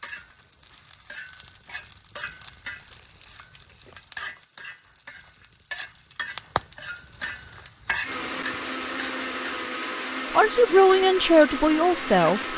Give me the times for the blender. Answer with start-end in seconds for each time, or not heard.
8.0-12.5.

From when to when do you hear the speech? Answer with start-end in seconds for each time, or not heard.
10.3-12.5.